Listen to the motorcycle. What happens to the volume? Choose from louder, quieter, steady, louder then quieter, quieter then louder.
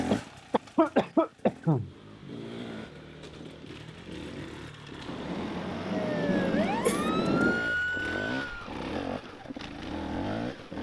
louder.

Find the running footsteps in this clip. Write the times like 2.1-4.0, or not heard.
not heard.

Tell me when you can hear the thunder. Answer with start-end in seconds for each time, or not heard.
5.0-7.6.